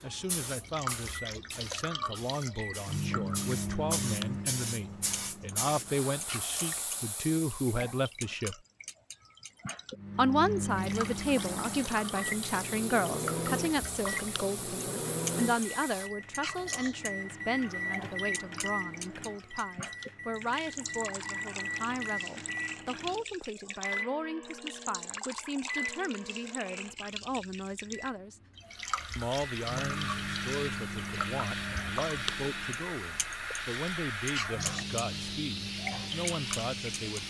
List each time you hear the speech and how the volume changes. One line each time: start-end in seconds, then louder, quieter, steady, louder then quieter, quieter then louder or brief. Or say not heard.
0.0-8.6 louder
10.2-28.4 quieter
29.1-37.2 steady.